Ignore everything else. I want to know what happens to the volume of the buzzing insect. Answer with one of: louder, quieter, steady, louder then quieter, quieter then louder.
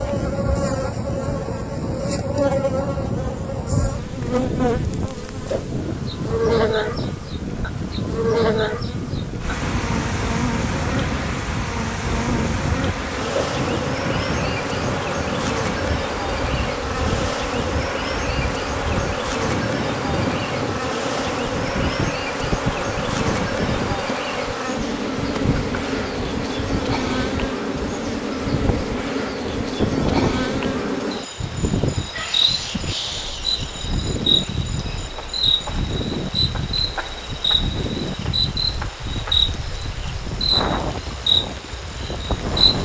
steady.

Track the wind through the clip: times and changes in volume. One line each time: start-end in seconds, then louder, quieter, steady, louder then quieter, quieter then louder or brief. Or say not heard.
0.0-42.8 steady.